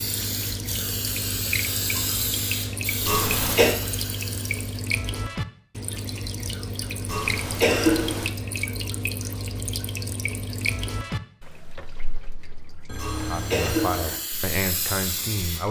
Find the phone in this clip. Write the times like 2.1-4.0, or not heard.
12.8-14.1.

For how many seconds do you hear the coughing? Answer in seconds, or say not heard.
3 s.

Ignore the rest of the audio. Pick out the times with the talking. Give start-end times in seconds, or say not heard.
13.2-15.6.